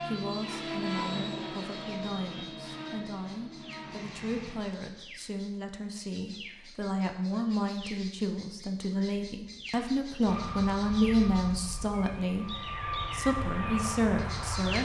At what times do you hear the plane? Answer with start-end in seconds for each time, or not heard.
0.0-4.6, 10.2-14.7.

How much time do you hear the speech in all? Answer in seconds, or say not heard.
15 s.